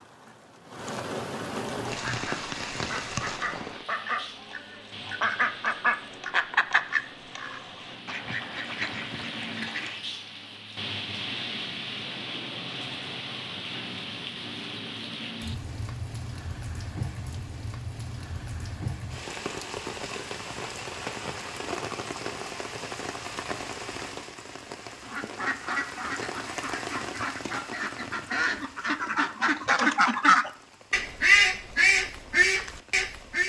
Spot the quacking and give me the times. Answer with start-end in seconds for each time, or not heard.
2.0-10.0, 25.1-33.4.